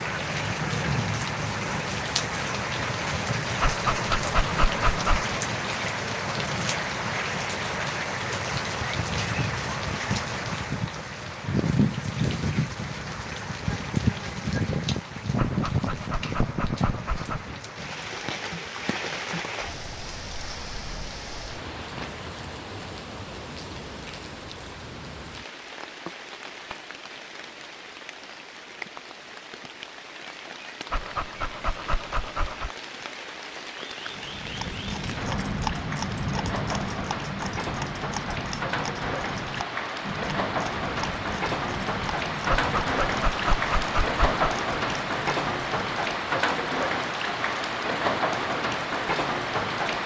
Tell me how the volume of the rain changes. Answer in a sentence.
The loudness of the rain goes down, then up.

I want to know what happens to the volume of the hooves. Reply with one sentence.
The volume of the hooves goes down.